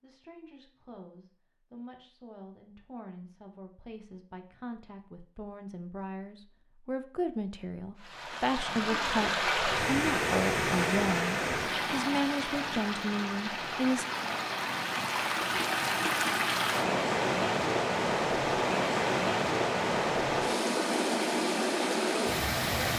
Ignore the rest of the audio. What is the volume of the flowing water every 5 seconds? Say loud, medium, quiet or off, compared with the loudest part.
off, loud, loud, loud, loud.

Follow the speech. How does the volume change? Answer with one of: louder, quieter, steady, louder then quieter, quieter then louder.
louder.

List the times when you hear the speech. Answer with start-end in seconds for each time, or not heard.
0.0-14.1.